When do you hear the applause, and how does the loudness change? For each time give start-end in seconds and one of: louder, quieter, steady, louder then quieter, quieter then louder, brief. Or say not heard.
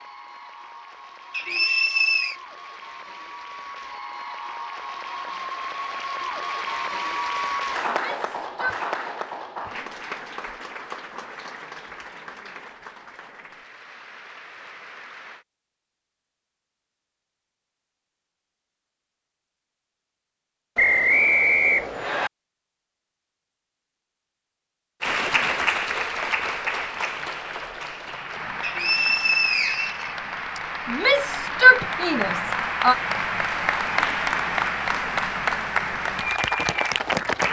0.0-15.4 louder then quieter
25.0-37.4 quieter then louder.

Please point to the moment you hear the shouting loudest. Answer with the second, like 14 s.
32 s.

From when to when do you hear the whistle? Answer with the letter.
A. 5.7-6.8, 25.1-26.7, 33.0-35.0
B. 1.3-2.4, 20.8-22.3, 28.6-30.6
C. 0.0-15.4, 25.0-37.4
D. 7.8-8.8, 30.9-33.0
B.